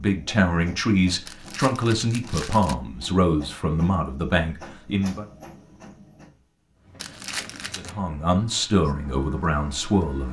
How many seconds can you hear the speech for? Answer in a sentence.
You can hear the speech for 8 seconds altogether.